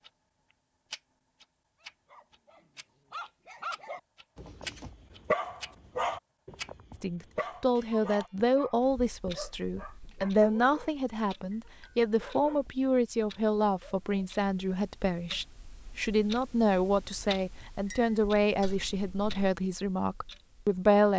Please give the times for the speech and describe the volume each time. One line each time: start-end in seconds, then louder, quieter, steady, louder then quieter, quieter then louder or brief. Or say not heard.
7.0-21.1 steady.